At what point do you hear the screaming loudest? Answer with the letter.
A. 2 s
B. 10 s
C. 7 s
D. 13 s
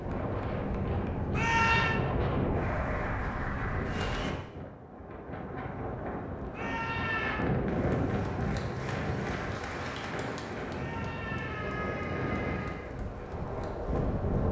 A.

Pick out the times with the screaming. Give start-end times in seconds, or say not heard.
1.3-2.0, 6.5-7.4, 10.7-12.8.